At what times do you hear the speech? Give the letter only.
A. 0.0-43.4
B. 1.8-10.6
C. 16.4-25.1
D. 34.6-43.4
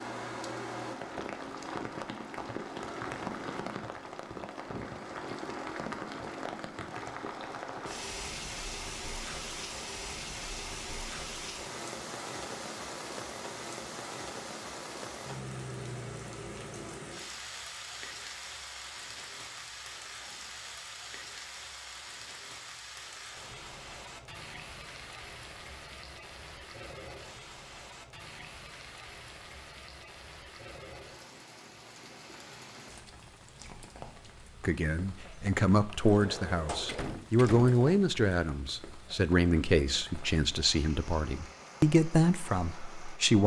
D.